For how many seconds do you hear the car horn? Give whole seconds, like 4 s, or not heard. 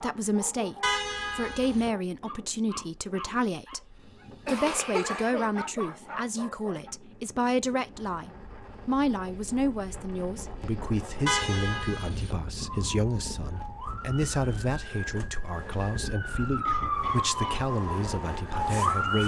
2 s.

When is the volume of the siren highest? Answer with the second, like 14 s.
19 s.